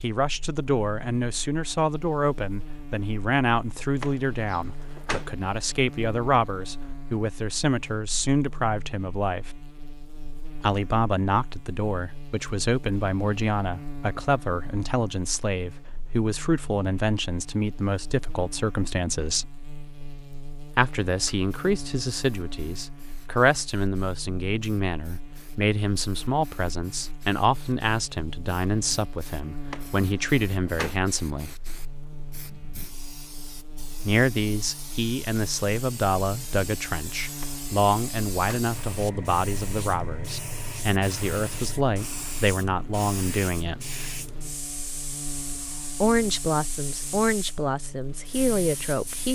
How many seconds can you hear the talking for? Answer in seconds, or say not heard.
43 s.